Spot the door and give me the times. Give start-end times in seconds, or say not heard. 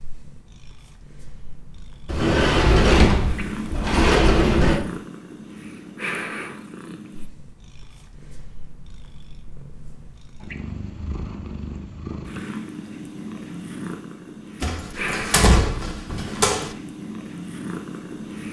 2.0-4.8, 14.6-16.8.